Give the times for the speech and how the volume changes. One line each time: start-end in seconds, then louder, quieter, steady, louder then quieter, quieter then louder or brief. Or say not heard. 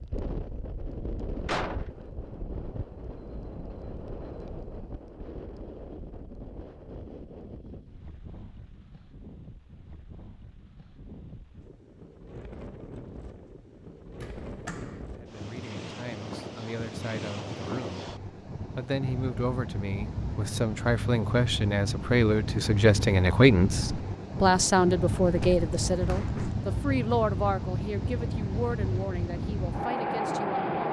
15.2-30.8 louder then quieter.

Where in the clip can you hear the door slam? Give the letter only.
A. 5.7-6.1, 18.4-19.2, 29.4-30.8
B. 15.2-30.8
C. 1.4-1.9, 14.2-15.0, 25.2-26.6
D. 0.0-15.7
C.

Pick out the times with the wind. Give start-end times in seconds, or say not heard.
0.0-30.8.